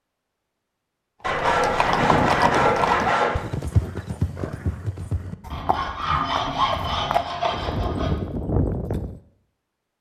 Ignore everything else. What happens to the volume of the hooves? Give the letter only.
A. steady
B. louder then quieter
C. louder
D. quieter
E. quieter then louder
E.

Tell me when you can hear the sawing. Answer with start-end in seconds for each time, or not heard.
1.2-3.4, 5.5-8.2.